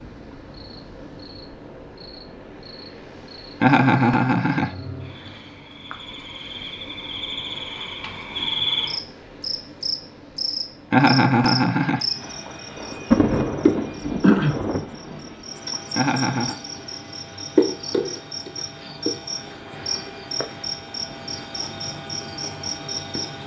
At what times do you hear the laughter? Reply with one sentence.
The laughter can be heard from 3.6 to 4.7 s, from 10.9 to 12.1 s and from 15.9 to 16.6 s.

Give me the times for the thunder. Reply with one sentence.
The thunder can be heard from 12.3 to 15.4 s.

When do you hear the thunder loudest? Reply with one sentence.
The loudest moment of the thunder is at 13 seconds.